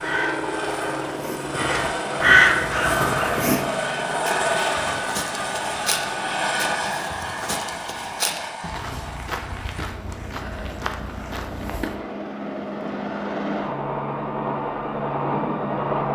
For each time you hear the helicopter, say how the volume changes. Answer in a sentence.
You can hear the helicopter from 0.0 to 16.0 s, getting quieter then louder.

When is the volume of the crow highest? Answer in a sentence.
The loudest moment of the crow is at 2 seconds.